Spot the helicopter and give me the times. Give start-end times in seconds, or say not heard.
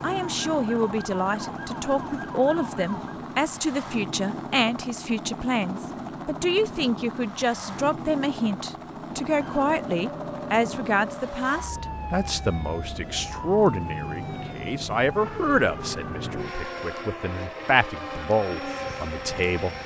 0.0-19.8.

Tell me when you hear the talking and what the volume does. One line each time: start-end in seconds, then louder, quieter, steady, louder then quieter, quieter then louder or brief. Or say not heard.
0.0-19.8 steady.